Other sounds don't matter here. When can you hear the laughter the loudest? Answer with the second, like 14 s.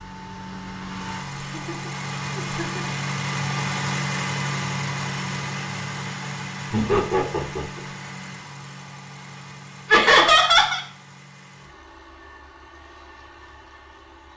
10 s.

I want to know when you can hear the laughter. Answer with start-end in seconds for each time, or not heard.
1.6-3.0, 6.7-7.8, 9.9-10.8.